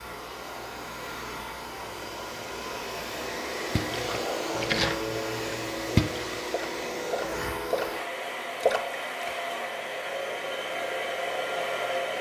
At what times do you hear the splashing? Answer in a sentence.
You can hear the splashing from 3.8 to 9.3 s.